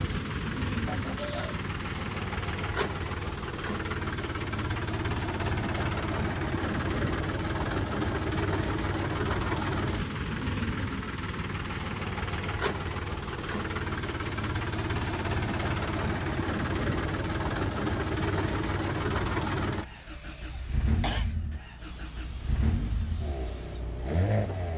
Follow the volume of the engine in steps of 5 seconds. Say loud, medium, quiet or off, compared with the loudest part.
loud, loud, loud, loud, medium.